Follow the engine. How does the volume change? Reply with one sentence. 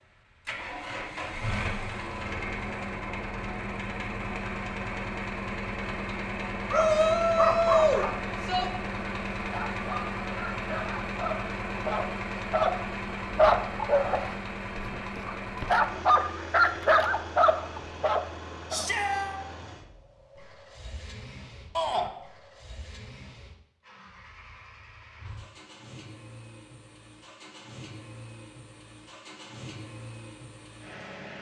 The volume of the engine goes down.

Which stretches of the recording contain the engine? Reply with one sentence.
The engine can be heard from 0.5 to 31.3 s.